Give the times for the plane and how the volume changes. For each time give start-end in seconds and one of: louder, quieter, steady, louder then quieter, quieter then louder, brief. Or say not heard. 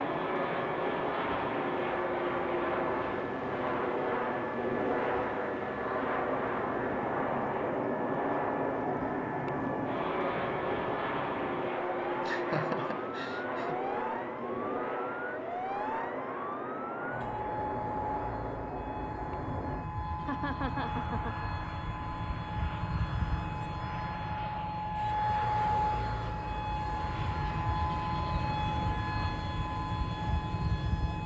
0.0-31.2 quieter.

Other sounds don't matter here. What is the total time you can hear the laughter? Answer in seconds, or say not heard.
3 s.